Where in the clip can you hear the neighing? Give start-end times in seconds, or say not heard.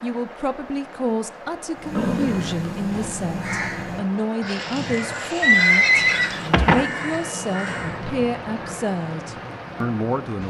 1.9-3.2, 5.4-6.8.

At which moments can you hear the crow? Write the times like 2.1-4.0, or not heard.
1.8-8.0.